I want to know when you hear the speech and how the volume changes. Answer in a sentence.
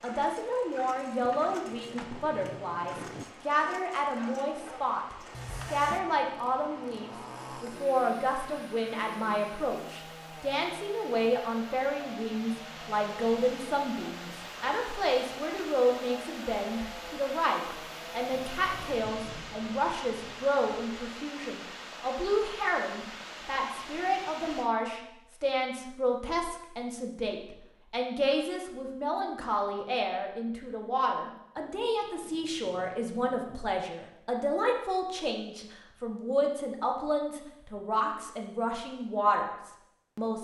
You can hear the speech from 0.0 to 40.4 s, at a steady volume.